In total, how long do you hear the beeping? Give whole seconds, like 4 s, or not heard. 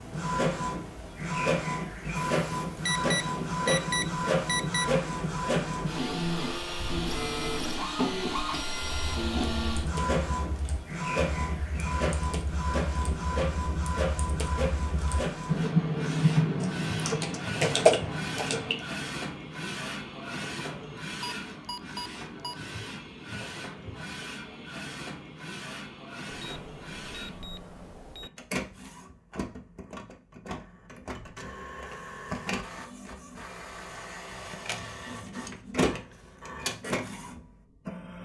6 s.